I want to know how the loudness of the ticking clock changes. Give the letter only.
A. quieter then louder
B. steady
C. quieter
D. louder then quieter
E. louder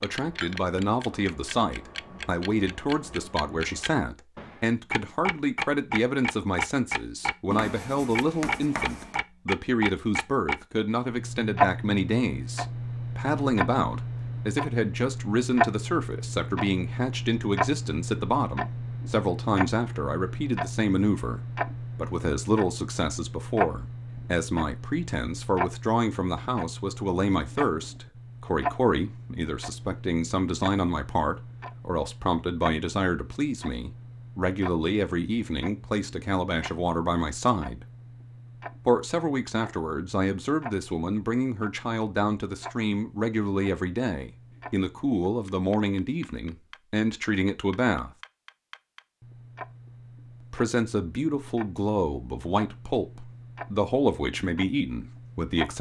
C.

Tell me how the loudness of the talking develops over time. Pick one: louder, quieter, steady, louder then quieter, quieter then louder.
steady.